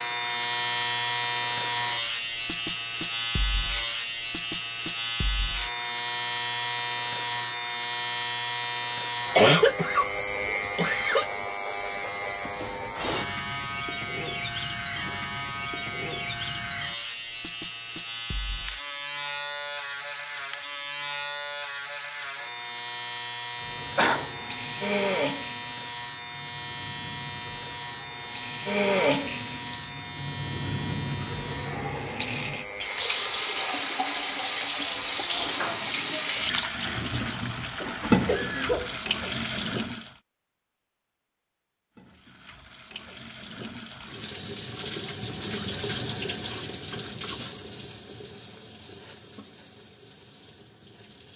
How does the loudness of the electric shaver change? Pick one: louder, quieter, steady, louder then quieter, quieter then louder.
quieter.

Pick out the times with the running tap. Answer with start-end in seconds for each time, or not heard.
23.6-40.1, 42.0-51.3.